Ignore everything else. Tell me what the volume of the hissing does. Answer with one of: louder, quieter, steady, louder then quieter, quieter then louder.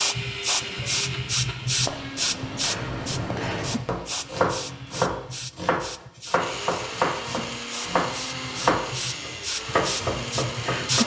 quieter then louder.